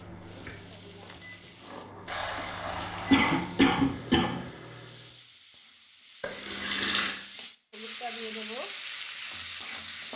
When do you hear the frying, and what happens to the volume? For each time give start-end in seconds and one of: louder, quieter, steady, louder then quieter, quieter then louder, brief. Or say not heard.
0.0-10.1 louder.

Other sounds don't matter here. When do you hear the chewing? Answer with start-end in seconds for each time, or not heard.
0.0-2.1.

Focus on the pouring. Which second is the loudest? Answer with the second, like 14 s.
7 s.